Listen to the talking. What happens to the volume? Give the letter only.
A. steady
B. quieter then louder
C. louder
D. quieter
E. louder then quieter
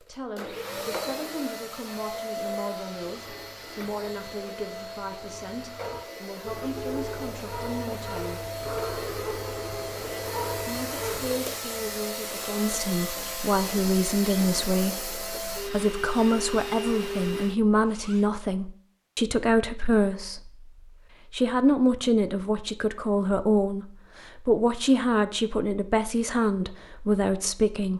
C.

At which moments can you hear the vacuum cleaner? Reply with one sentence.
You can hear the vacuum cleaner from 0.0 to 18.2 s.